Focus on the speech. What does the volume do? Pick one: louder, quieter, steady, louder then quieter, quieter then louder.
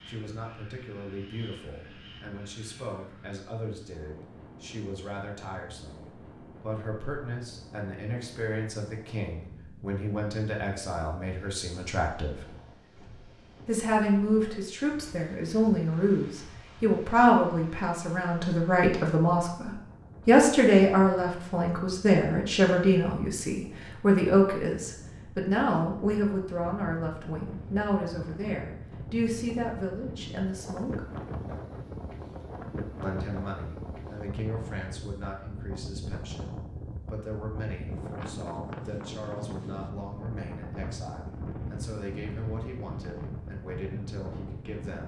louder then quieter.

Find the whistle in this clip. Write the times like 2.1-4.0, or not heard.
not heard.